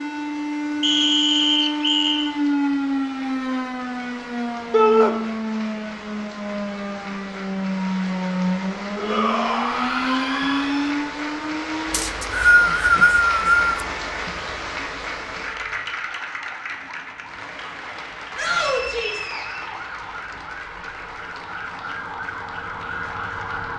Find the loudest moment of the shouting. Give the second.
5 s.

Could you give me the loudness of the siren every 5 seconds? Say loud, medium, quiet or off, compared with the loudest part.
loud, loud, loud, quiet, medium.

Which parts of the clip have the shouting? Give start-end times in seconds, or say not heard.
4.7-5.2, 8.9-10.9, 18.4-19.3.